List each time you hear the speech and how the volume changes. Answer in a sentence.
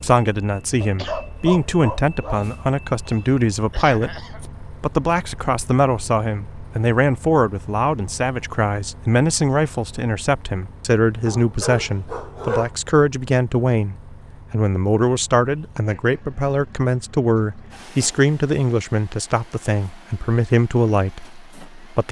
You can hear the speech from 0.0 to 22.0 s, at a steady volume.